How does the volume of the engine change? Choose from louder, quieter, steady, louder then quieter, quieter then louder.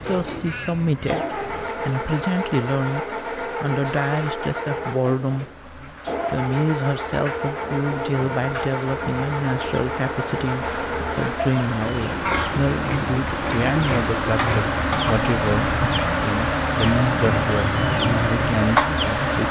steady.